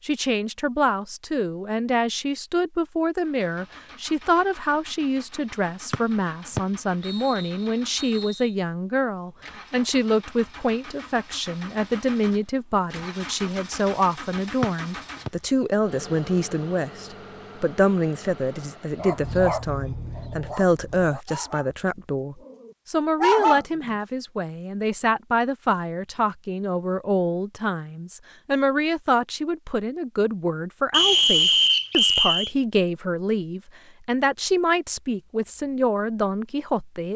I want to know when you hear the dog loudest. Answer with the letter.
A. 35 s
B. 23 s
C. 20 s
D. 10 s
B.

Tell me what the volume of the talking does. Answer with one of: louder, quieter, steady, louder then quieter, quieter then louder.
steady.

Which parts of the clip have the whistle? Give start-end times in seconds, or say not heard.
5.9-8.5, 14.6-15.3, 30.9-32.5.